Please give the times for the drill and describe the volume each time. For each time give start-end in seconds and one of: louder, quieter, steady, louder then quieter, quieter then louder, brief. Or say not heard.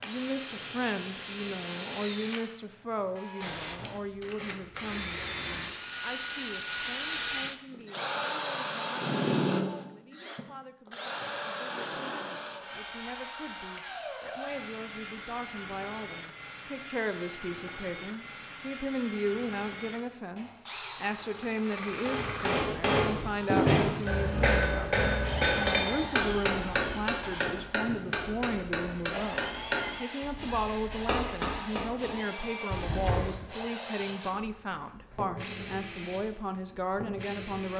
0.0-37.7 quieter.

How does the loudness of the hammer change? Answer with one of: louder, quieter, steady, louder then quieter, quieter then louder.
quieter.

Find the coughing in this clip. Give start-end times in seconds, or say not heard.
32.7-33.5.